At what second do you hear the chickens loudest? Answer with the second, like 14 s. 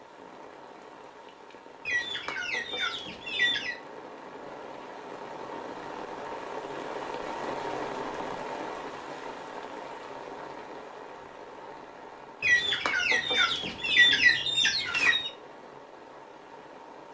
14 s.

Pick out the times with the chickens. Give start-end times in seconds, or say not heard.
1.9-3.8, 12.4-15.3.